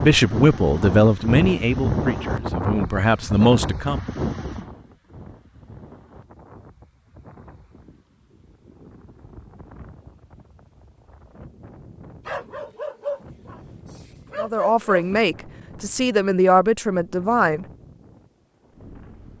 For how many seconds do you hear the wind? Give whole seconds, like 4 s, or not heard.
19 s.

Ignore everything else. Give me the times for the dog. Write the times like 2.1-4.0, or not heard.
12.2-15.2.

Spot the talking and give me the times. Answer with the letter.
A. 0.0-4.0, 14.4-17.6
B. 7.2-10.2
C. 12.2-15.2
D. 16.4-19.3
A.